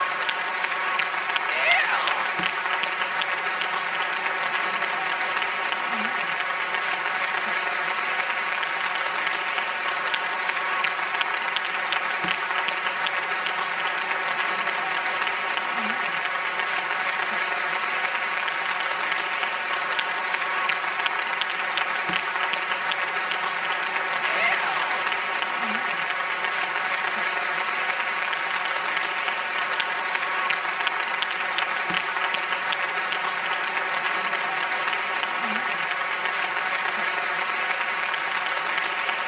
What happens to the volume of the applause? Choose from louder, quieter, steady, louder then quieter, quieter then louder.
steady.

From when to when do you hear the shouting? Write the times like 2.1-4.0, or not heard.
1.4-2.4, 24.2-24.9.